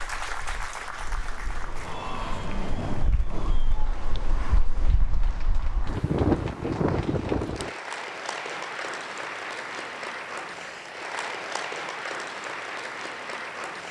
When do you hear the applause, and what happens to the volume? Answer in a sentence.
The applause can be heard from 0.0 to 13.8 s, getting quieter then louder.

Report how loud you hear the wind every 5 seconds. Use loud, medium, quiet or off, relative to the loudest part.
medium, loud, off.